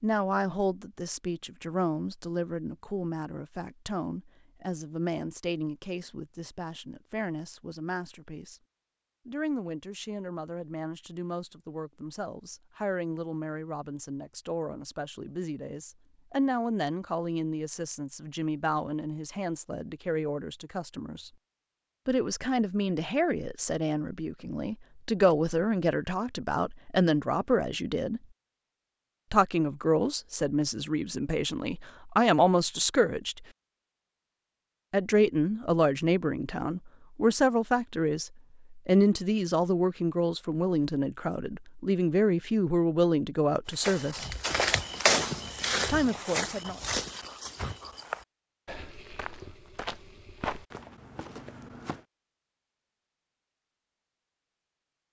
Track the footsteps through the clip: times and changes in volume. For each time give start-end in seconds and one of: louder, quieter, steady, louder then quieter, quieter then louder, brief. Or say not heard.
43.6-52.0 quieter.